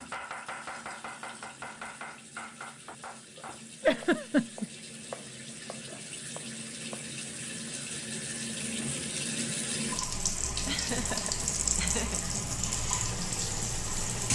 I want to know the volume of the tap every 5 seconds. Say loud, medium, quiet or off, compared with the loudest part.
quiet, medium, loud.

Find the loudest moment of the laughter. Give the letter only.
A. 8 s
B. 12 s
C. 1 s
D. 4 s
D.